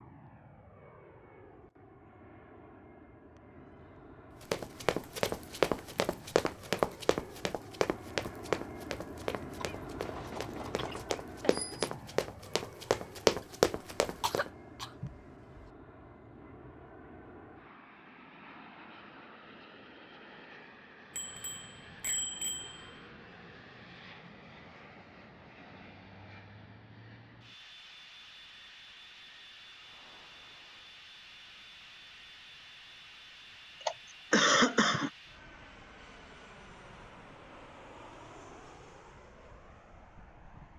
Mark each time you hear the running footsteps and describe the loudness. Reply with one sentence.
You can hear the running footsteps from 4.5 to 14.5 s, getting quieter then louder.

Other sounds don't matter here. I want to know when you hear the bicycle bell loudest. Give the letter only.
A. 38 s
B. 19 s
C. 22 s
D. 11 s
C.